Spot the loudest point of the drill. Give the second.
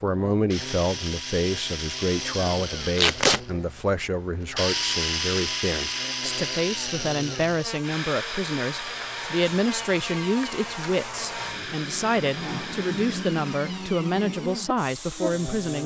5 s.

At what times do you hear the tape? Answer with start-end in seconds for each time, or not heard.
3.0-3.4.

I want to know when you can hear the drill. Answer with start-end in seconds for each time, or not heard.
0.0-15.8.